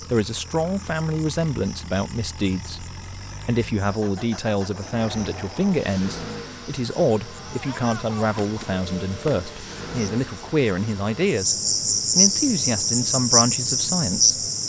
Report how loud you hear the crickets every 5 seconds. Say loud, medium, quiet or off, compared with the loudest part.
quiet, quiet, loud.